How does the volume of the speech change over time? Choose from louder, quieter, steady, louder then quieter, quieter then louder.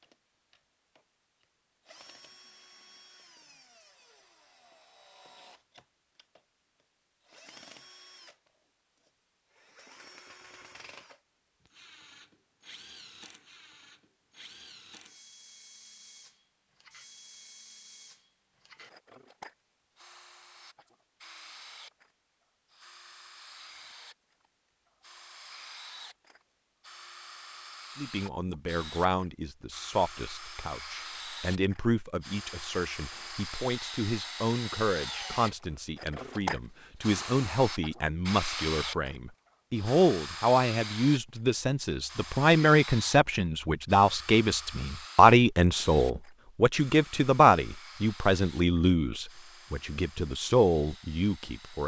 louder.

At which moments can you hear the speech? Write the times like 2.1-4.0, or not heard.
27.9-51.8.